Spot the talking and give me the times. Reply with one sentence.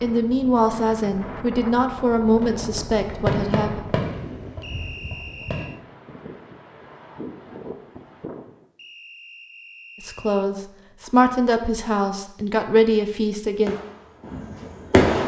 You can hear the talking from 0.0 to 3.9 s and from 10.0 to 13.8 s.